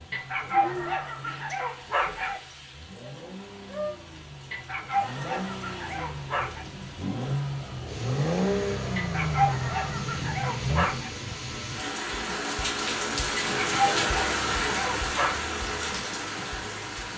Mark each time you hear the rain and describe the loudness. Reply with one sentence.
The rain can be heard from 0.0 to 17.1 s, getting louder.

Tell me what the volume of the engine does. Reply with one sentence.
The loudness of the engine goes up.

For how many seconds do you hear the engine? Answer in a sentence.
You can hear the engine for 11 seconds altogether.